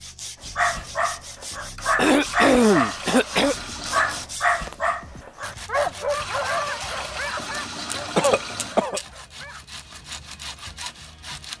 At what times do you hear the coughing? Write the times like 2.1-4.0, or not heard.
1.9-3.5, 8.2-9.0.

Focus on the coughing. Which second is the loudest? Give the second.
3 s.